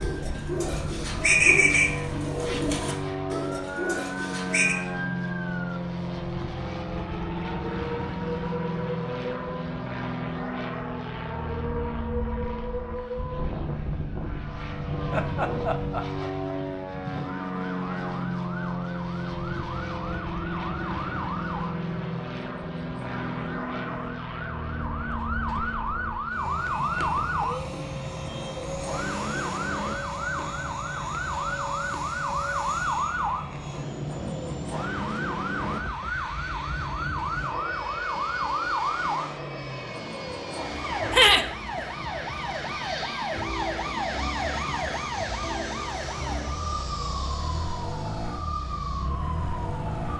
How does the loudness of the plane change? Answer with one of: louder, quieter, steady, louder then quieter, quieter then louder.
quieter.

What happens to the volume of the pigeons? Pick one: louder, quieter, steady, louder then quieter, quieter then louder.
louder then quieter.